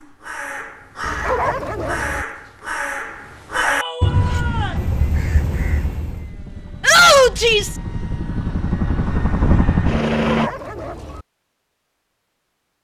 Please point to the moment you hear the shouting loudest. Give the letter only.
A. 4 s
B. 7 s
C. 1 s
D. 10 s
B.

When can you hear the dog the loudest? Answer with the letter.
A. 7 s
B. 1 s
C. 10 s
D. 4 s
B.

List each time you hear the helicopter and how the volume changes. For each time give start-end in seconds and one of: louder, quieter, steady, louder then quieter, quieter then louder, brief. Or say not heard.
4.1-10.5 quieter then louder.